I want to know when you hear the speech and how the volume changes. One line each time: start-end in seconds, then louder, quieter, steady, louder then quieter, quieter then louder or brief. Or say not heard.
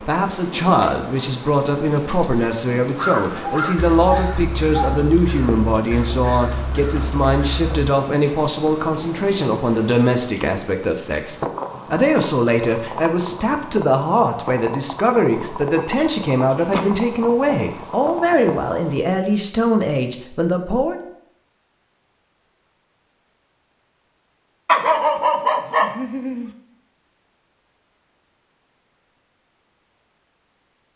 0.0-21.0 steady.